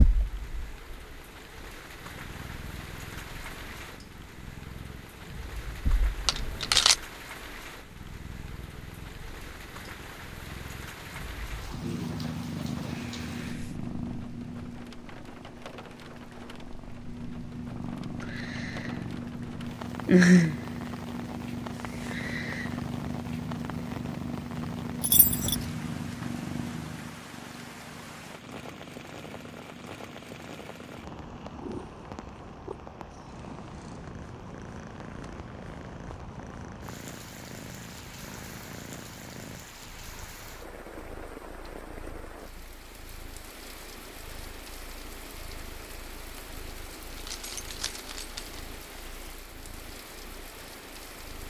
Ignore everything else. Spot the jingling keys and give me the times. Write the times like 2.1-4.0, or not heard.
6.2-7.0, 25.0-25.7, 47.1-48.6.